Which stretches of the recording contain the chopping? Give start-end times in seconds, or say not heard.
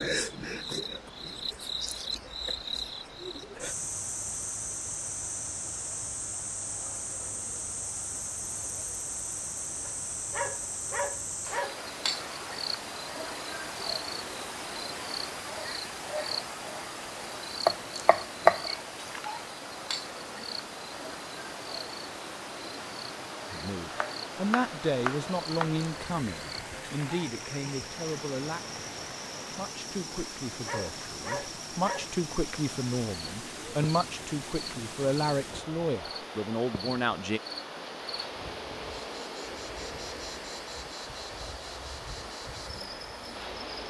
17.6-18.7, 23.9-25.7.